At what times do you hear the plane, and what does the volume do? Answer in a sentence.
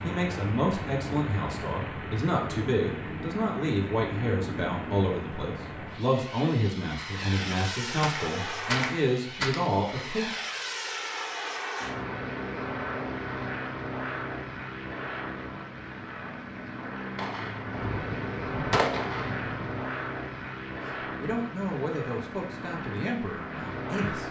You can hear the plane from 0.0 to 24.2 s, at a steady volume.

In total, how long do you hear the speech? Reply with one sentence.
The speech can be heard for 13 seconds in total.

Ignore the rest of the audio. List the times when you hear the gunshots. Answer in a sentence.
You can hear the gunshots from 7.9 to 9.7 s and from 17.1 to 19.8 s.